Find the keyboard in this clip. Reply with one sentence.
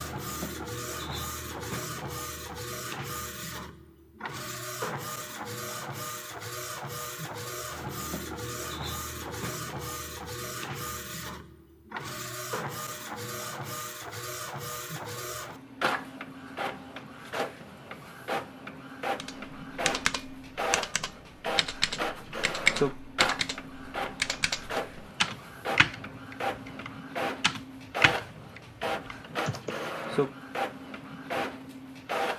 The keyboard can be heard from 19.1 to 29.8 s.